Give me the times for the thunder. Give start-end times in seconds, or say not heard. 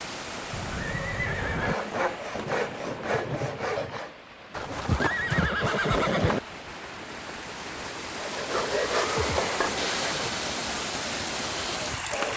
2.3-4.0.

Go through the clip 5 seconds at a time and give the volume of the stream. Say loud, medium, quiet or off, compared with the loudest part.
medium, loud, loud.